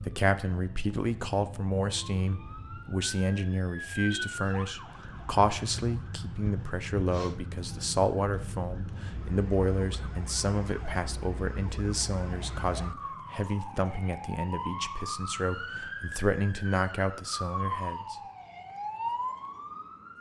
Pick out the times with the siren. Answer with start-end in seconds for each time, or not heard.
0.0-20.1.